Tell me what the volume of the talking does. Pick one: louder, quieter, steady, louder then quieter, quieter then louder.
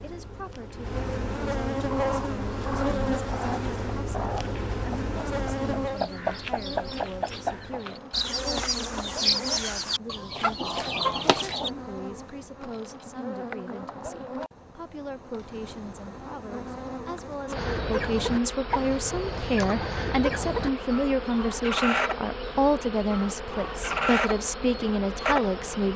louder.